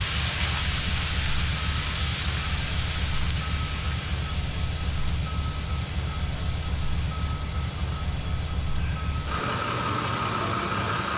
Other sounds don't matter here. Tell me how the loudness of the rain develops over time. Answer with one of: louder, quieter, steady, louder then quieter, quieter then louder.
quieter.